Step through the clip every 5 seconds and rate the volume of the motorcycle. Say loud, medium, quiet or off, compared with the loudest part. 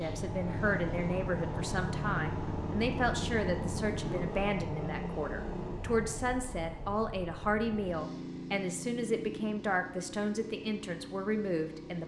loud, medium, medium.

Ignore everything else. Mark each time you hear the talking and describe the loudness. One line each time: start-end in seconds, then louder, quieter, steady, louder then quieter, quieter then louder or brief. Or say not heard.
0.0-12.0 steady.